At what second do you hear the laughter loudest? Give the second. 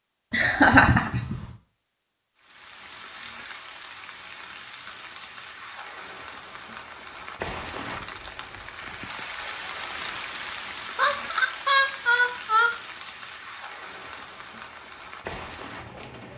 1 s.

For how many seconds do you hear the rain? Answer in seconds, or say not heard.
14 s.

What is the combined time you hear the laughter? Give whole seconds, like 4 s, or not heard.
3 s.